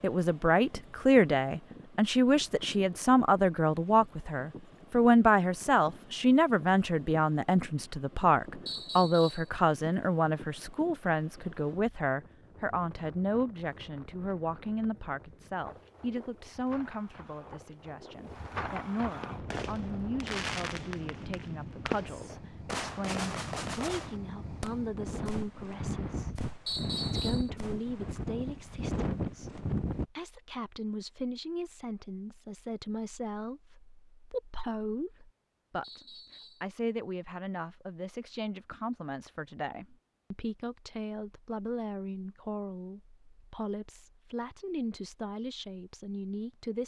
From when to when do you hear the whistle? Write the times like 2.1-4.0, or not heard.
8.7-9.5, 26.6-27.5, 35.8-36.6.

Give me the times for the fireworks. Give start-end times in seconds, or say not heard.
19.2-28.1.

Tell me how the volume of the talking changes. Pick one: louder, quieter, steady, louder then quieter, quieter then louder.
quieter.